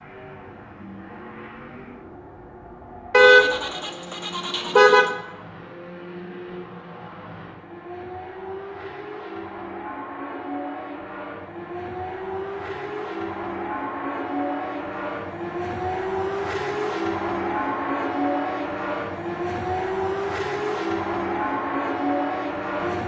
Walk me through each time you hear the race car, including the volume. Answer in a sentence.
The race car can be heard from 0.0 to 23.0 s, getting louder.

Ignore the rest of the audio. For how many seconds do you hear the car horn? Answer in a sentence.
You can hear the car horn for 2 seconds altogether.